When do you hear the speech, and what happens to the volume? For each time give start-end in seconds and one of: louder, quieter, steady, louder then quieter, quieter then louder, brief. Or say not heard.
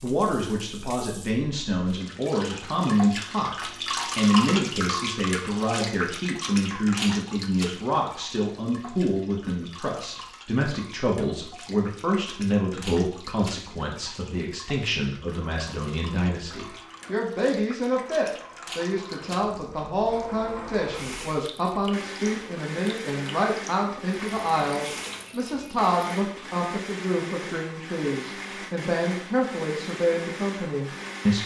0.0-31.4 steady.